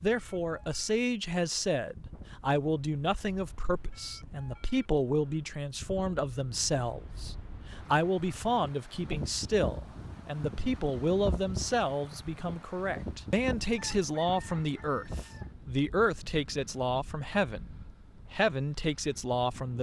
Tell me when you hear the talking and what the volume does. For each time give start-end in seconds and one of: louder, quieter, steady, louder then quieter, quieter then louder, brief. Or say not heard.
0.0-19.7 steady.